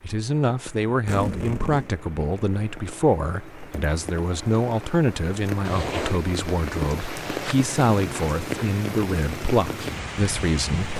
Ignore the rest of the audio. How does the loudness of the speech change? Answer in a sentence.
The volume of the speech stays about the same.